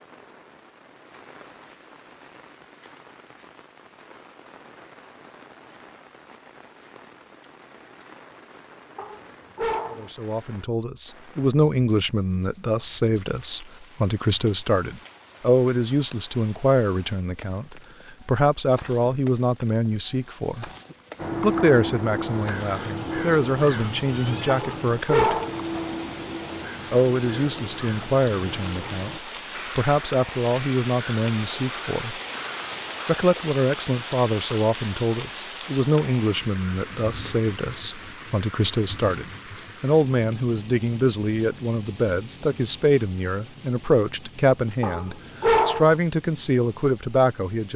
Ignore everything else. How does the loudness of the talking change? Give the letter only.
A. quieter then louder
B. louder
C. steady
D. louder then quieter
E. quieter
C.